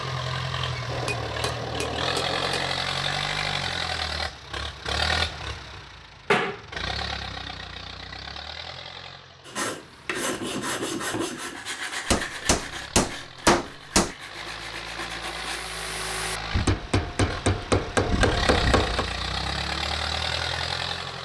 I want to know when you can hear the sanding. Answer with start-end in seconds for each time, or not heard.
9.4-16.4.